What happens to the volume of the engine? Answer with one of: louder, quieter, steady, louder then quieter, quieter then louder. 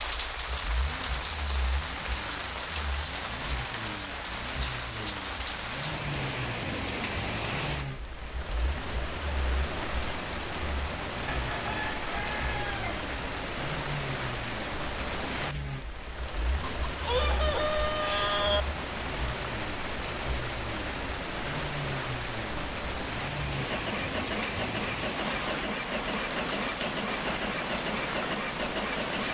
louder.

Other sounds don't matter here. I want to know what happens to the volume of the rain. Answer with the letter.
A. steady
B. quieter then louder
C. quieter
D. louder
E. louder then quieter
A.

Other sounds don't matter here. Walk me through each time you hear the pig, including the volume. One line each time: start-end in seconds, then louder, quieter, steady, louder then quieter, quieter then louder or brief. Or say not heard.
not heard.